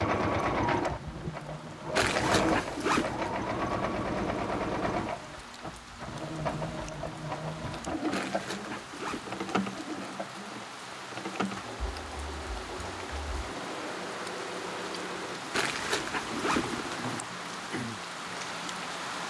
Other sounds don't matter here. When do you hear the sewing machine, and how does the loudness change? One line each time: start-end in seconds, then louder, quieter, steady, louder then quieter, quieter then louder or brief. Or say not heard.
0.0-19.2 quieter.